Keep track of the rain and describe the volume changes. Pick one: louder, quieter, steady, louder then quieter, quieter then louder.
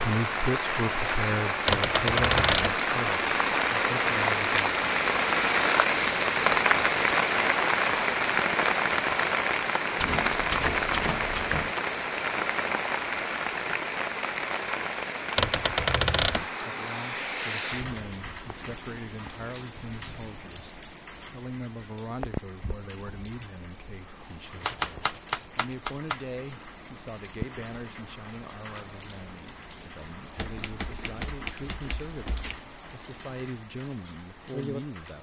quieter.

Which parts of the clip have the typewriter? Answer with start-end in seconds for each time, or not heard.
1.6-2.8, 9.9-11.8, 15.3-16.4, 24.6-26.2, 30.4-32.5.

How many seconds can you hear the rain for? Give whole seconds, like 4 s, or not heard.
35 s.